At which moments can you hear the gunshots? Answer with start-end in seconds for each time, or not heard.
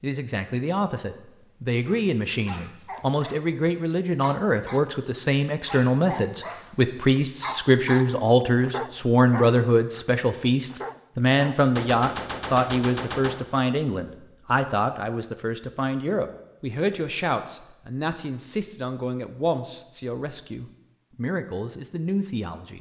11.8-13.4.